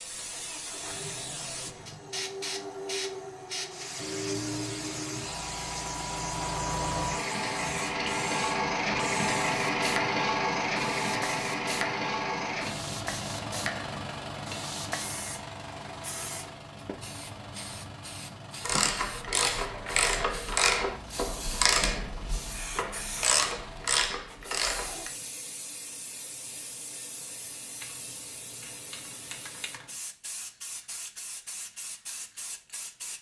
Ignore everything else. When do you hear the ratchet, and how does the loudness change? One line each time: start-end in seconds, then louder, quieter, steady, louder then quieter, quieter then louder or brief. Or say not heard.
18.6-25.1 steady.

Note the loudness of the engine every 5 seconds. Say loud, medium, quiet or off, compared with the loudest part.
medium, loud, loud, quiet, quiet, off, off.